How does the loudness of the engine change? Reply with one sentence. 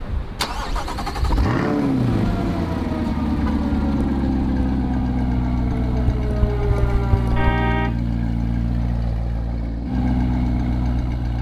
The loudness of the engine stays about the same.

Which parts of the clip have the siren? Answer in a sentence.
The siren can be heard from 2.2 to 7.5 s.